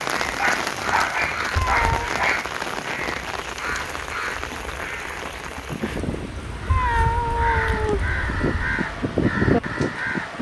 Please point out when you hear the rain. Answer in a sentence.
You can hear the rain from 0.0 to 10.3 s.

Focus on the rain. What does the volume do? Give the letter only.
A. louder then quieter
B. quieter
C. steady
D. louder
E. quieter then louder
B.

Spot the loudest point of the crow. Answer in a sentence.
The volume of the crow peaks at 9 seconds.